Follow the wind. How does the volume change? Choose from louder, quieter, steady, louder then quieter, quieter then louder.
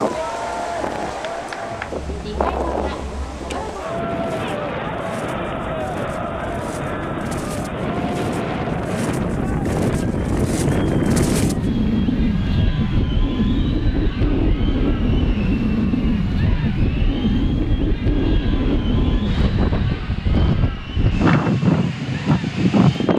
louder.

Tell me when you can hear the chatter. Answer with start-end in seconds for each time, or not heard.
0.0-23.1.